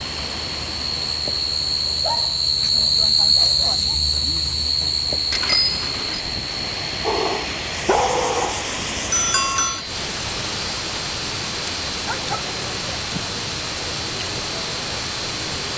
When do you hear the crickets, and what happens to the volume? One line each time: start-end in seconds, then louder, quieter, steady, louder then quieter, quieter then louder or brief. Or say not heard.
0.0-15.7 quieter.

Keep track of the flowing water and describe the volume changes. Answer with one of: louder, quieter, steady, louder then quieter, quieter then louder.
louder.